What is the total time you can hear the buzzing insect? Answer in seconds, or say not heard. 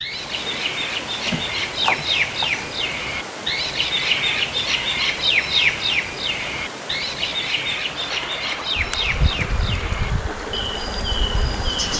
3 s.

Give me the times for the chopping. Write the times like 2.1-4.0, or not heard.
1.2-2.7.